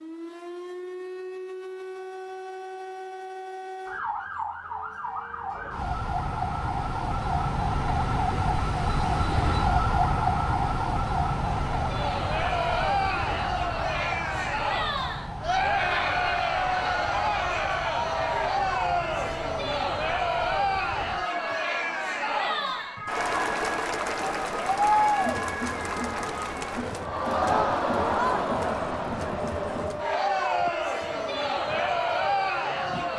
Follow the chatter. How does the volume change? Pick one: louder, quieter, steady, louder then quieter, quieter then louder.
steady.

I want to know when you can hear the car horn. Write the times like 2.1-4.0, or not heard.
not heard.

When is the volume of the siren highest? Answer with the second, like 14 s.
10 s.